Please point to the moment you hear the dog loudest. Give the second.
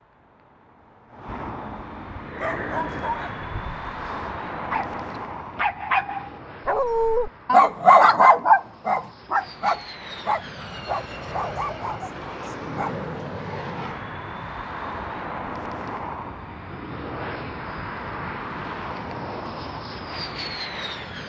8 s.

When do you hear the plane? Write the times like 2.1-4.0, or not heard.
0.0-21.2.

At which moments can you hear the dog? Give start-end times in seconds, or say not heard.
2.4-13.0.